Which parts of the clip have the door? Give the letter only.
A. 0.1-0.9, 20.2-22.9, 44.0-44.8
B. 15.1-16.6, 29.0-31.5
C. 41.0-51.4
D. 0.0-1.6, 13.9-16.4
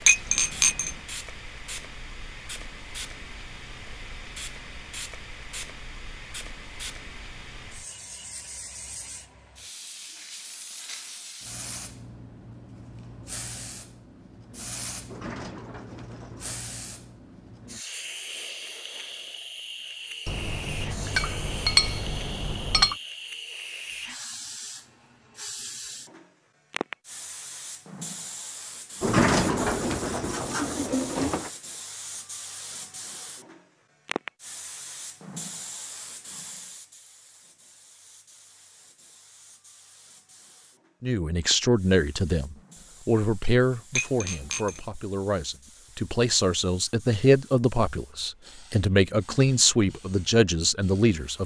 B.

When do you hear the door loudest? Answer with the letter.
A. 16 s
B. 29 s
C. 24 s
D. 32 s
B.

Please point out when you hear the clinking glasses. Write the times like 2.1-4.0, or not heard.
0.1-0.9, 20.2-22.9, 44.0-44.8.